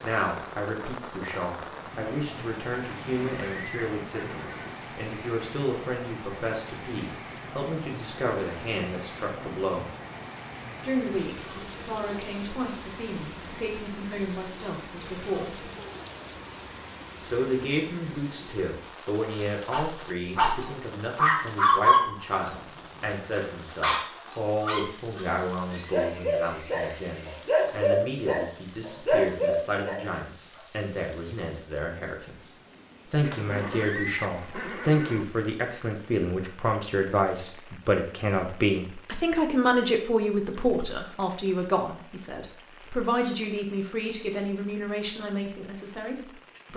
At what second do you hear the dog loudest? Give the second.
22 s.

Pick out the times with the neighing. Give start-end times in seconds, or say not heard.
3.0-4.8, 25.6-27.4, 33.2-35.2.